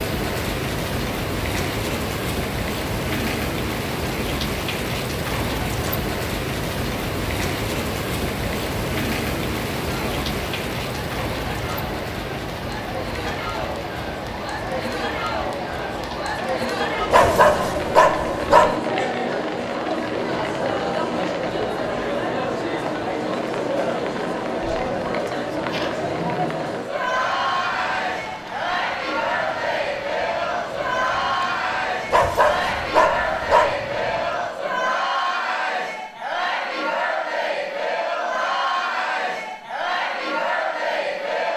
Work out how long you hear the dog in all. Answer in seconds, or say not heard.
3 s.